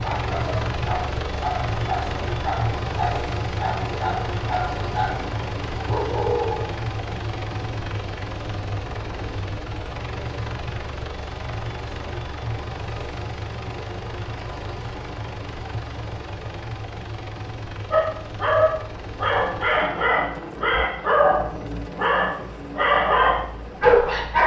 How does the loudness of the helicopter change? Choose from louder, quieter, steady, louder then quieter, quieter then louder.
quieter.